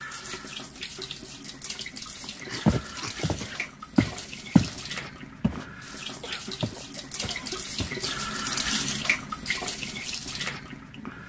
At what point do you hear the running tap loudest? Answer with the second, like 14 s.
9 s.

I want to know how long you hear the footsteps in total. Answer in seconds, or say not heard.
5 s.